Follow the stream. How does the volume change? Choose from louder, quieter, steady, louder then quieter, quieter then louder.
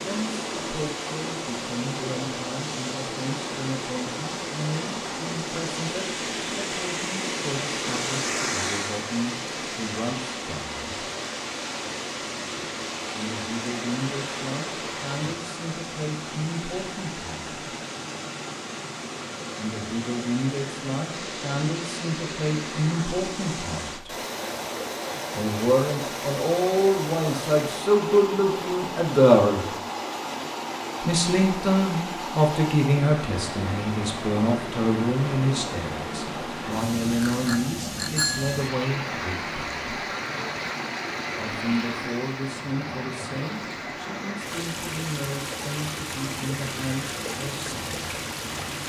steady.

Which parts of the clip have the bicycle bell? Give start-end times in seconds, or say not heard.
37.2-38.6.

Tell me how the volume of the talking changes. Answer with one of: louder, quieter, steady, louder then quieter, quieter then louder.
louder then quieter.